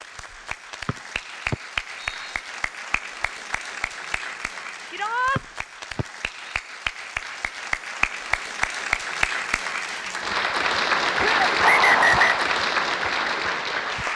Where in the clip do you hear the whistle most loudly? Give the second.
12 s.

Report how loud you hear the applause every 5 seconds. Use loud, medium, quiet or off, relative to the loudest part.
medium, medium, loud.